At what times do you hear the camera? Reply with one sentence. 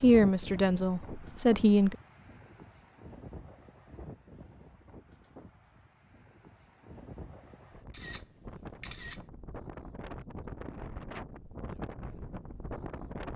You can hear the camera from 7.9 to 9.2 s.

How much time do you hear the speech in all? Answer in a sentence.
The speech can be heard for 2 seconds in total.